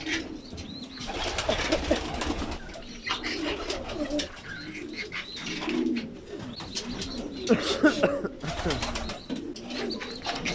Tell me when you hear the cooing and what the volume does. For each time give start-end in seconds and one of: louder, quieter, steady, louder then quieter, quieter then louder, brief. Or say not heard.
0.0-10.5 steady.